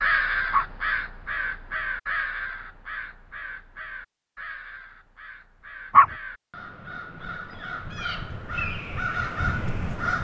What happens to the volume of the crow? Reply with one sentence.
The loudness of the crow goes down, then up.